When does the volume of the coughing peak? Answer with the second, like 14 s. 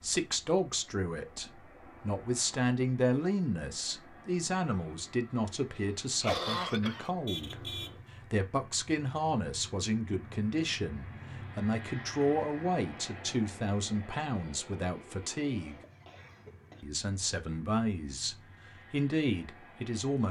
6 s.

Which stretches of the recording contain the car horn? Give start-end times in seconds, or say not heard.
7.2-8.4.